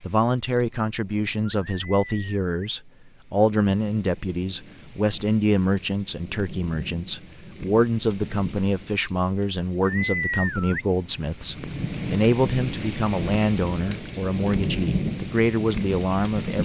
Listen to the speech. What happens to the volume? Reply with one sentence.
The loudness of the speech stays about the same.